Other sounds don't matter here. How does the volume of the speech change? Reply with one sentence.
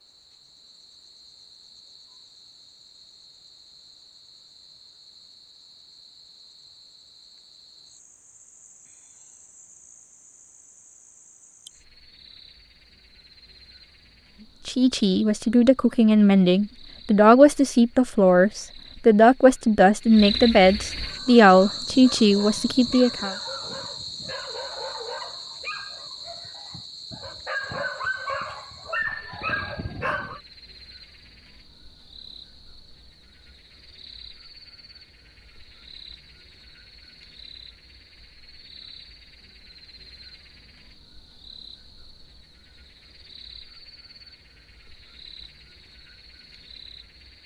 The loudness of the speech stays about the same.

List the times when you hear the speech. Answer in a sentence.
You can hear the speech from 14.7 to 23.4 s.